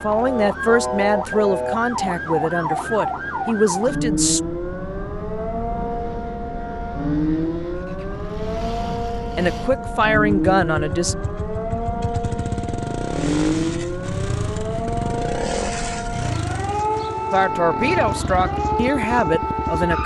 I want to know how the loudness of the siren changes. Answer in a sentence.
The volume of the siren stays about the same.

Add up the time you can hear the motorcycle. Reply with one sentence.
The motorcycle can be heard for 20 seconds in total.